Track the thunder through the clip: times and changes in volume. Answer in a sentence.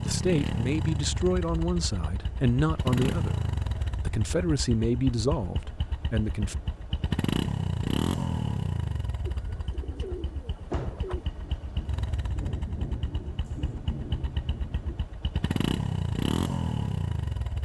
The thunder can be heard from 10.7 to 15.1 s, getting louder.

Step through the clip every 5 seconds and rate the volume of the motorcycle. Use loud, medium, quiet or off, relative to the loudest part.
loud, loud, medium, loud.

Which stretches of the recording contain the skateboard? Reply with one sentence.
You can't hear the skateboard here.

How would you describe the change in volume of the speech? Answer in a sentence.
The volume of the speech stays about the same.